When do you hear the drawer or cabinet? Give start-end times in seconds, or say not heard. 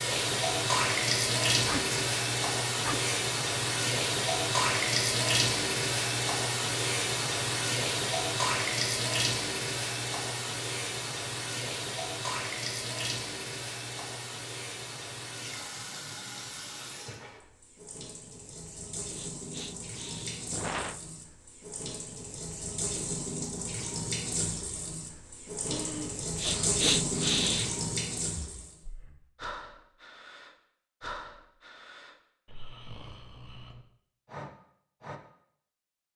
not heard.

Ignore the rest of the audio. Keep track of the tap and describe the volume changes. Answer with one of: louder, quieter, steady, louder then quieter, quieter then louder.
quieter then louder.